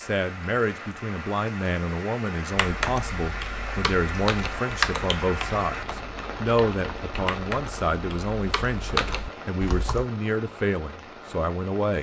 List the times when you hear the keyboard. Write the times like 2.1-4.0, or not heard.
2.5-10.1.